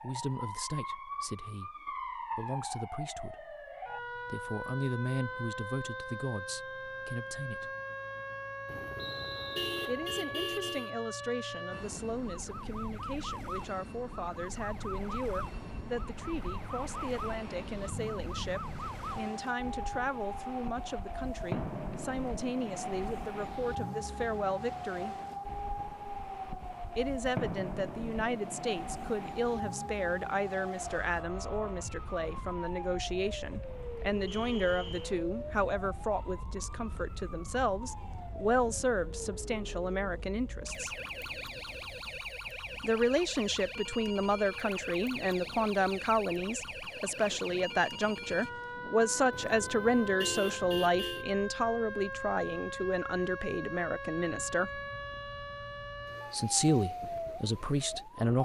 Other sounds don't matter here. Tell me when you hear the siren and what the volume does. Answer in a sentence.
The siren can be heard from 0.0 to 58.4 s, at a steady volume.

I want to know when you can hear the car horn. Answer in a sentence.
You can hear the car horn from 8.7 to 10.9 s and from 49.3 to 51.2 s.